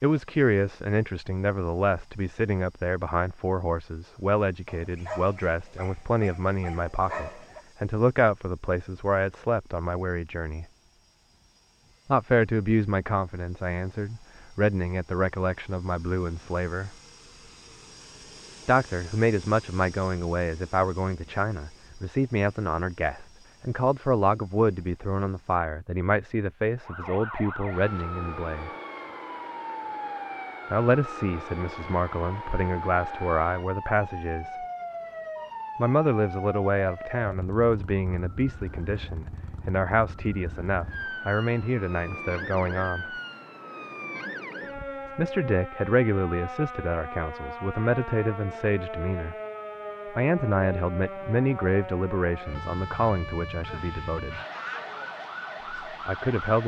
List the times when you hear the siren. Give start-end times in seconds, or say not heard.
26.8-56.6.